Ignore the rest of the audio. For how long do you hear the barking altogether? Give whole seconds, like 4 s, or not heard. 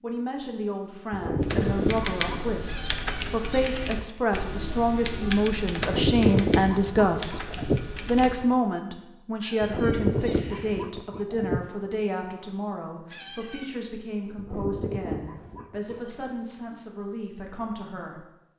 7 s.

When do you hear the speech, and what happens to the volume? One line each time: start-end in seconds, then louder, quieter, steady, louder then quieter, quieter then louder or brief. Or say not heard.
0.0-7.4 louder
8.1-18.2 quieter.